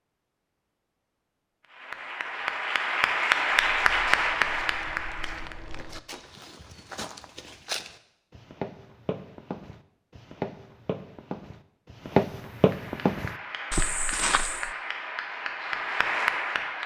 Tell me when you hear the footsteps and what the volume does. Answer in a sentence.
You can hear the footsteps from 3.5 to 14.7 s, getting louder.